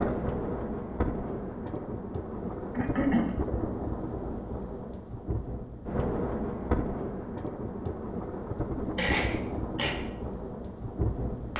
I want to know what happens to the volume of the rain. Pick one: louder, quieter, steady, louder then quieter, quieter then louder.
steady.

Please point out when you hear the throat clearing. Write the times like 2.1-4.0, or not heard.
2.8-3.4, 8.9-9.9.